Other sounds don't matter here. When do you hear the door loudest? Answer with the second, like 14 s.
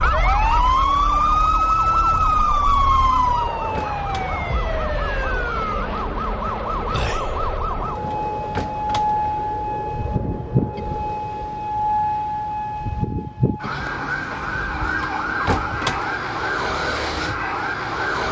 16 s.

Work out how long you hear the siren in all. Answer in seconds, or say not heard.
18 s.